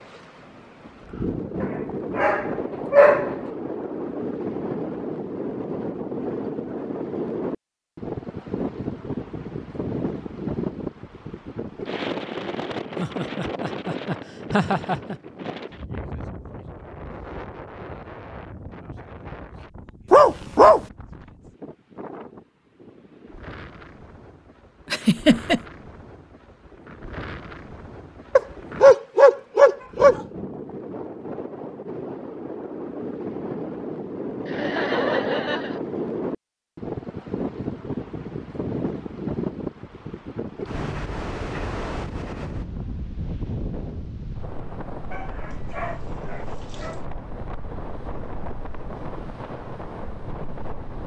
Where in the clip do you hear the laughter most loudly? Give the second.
25 s.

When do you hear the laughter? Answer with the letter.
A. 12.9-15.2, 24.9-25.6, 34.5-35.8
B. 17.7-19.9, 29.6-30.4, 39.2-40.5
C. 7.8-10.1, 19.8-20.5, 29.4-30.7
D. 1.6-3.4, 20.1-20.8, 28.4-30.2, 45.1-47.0
A.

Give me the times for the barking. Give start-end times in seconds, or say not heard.
1.6-3.4, 20.1-20.8, 28.4-30.2, 45.1-47.0.